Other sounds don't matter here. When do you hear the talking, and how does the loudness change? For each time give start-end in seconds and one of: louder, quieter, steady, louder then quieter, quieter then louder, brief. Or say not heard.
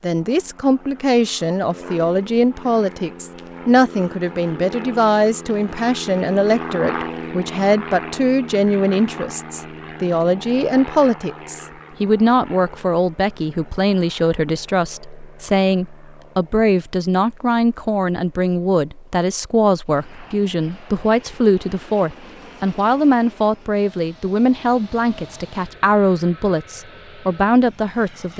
0.0-28.3 steady.